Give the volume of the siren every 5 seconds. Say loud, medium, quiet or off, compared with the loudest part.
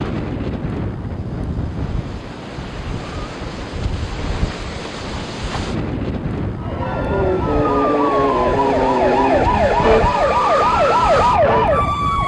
off, loud, loud.